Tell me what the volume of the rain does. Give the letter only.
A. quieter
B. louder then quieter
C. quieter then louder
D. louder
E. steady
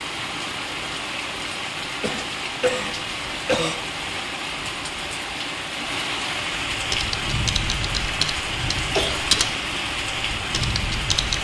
E.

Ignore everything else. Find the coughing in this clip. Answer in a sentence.
You can hear the coughing from 1.8 to 3.8 s and from 8.9 to 9.4 s.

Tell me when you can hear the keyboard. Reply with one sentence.
You can hear the keyboard from 6.9 to 9.5 s and from 10.4 to 11.3 s.